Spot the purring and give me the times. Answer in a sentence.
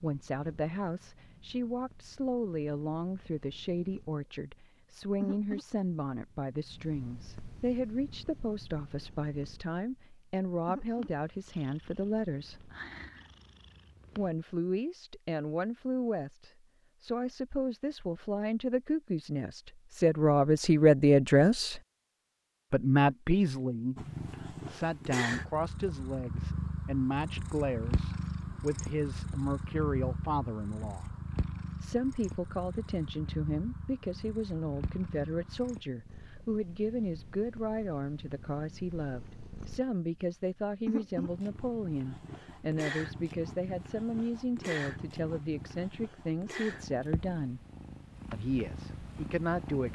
The purring can be heard from 0.0 to 14.3 s and from 23.9 to 49.8 s.